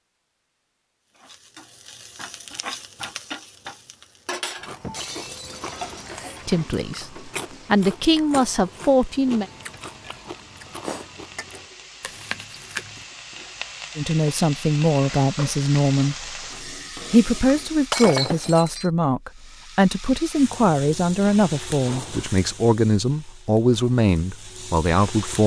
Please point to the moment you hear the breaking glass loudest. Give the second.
18 s.